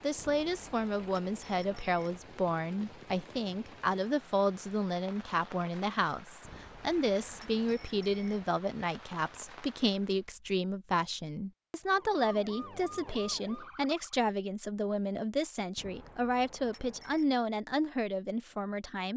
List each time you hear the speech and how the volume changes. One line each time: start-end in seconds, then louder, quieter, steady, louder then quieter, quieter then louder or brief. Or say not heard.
0.0-19.1 steady.